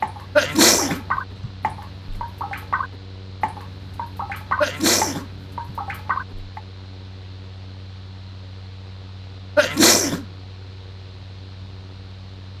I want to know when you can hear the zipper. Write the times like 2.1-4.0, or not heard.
not heard.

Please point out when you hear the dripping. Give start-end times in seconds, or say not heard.
0.0-6.6.